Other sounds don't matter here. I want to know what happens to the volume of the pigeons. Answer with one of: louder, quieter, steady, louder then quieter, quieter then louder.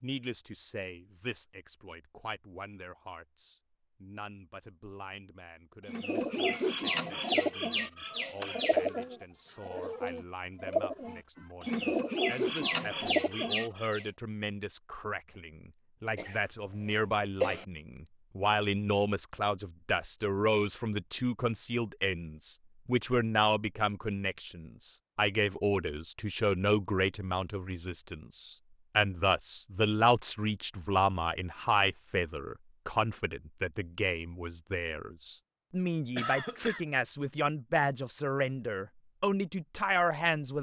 quieter then louder.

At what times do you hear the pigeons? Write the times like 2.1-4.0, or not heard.
5.8-14.1.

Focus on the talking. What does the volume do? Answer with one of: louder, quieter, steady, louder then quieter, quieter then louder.
louder.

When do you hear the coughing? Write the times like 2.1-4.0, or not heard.
16.1-17.6, 36.1-36.9.